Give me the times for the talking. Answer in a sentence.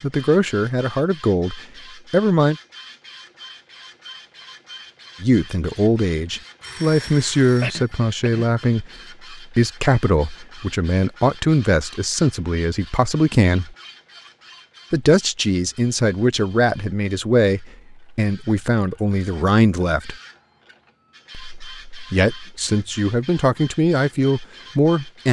The talking can be heard from 0.0 to 2.5 s, from 5.2 to 13.8 s, from 14.9 to 20.1 s and from 21.4 to 25.2 s.